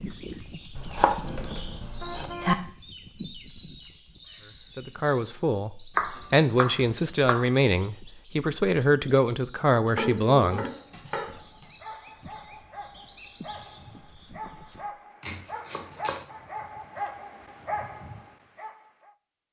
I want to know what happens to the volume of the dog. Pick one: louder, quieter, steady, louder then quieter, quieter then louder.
louder.